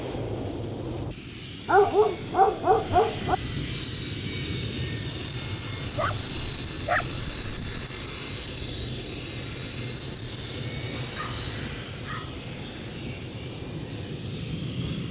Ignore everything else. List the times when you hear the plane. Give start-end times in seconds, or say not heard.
0.0-15.0.